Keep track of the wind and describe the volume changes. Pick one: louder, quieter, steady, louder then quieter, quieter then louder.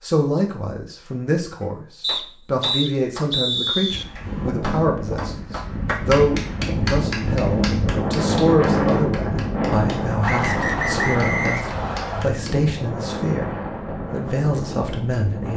louder then quieter.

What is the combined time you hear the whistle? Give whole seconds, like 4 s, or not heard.
4 s.